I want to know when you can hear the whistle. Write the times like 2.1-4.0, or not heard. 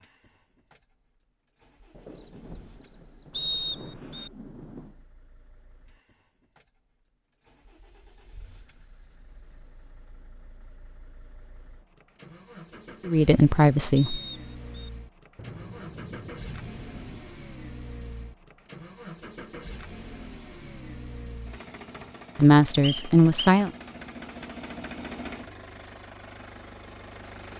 3.3-4.3, 13.9-14.9, 22.8-23.6.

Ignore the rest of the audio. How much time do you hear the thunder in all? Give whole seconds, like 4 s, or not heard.
5 s.